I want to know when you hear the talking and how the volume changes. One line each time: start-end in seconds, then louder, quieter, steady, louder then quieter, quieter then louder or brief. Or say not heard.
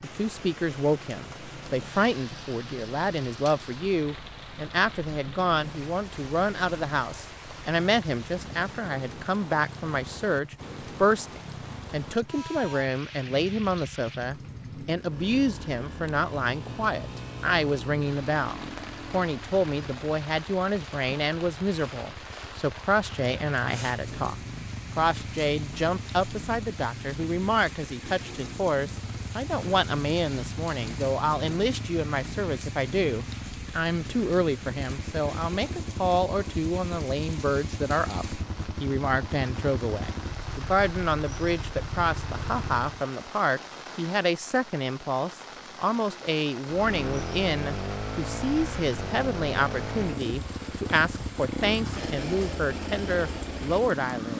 0.0-24.4 steady
24.9-54.3 steady.